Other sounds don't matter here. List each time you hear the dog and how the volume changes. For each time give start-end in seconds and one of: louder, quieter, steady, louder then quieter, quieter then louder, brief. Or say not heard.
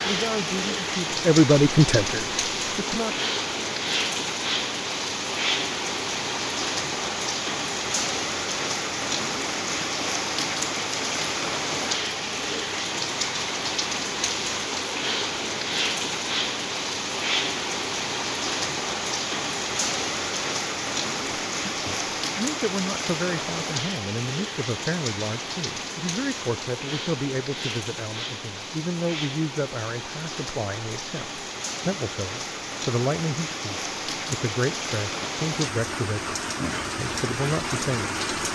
not heard.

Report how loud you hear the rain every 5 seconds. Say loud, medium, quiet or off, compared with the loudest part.
loud, loud, loud, loud, loud, medium, medium, loud.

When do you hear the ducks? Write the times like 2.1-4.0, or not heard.
not heard.